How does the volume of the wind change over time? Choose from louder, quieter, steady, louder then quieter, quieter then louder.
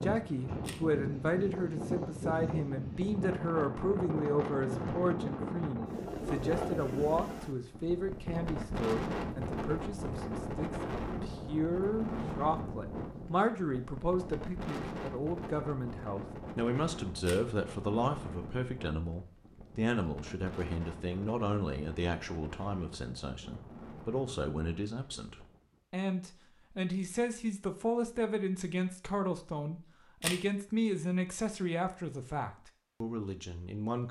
quieter.